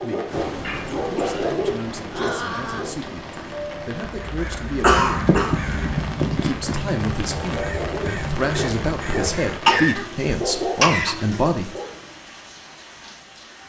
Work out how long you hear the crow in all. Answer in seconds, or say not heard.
9 s.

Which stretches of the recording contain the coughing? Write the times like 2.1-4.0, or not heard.
0.6-1.5, 4.8-6.8, 9.7-11.2.